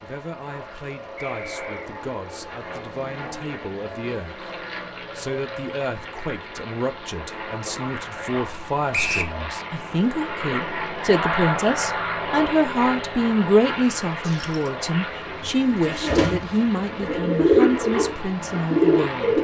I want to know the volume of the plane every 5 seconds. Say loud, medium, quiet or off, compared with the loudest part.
medium, medium, loud, medium.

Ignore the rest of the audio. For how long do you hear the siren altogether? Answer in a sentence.
You can't hear the siren here.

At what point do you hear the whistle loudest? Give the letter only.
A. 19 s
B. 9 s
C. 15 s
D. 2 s
B.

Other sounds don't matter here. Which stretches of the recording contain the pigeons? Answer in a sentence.
The pigeons can be heard from 15.2 to 19.3 s.